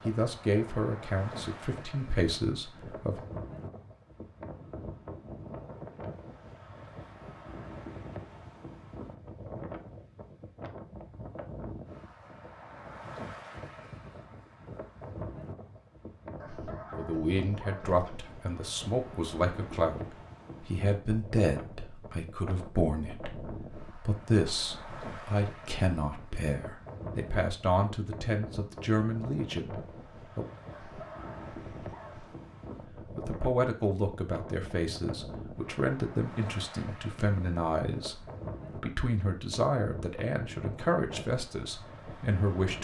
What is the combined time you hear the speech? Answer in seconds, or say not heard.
26 s.